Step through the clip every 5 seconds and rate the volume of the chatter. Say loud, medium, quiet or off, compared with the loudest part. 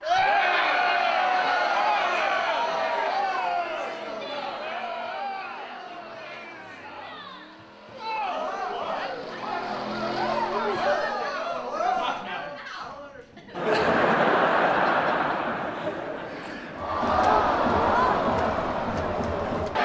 loud, medium, loud, loud.